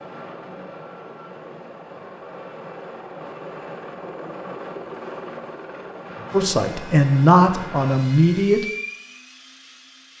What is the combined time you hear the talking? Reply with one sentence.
You can hear the talking for 2 seconds altogether.